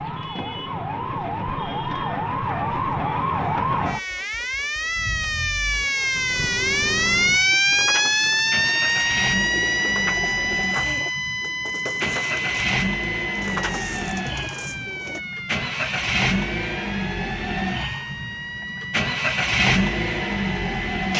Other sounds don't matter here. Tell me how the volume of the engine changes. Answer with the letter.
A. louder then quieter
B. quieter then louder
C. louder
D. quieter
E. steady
C.